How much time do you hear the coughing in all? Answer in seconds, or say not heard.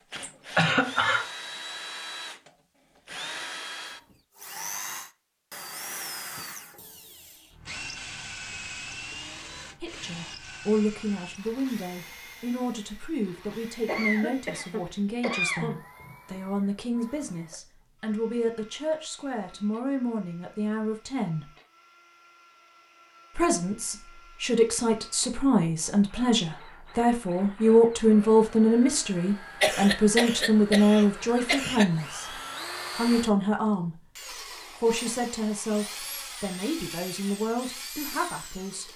5 s.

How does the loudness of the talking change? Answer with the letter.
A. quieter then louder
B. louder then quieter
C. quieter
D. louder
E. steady
B.